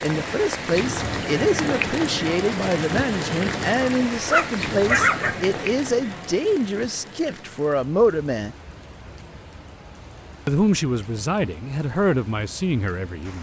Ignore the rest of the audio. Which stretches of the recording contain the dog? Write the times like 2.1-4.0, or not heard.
3.8-5.3.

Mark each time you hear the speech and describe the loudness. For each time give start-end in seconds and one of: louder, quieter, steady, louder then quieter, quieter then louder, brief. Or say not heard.
0.0-8.6 steady
10.4-13.3 brief.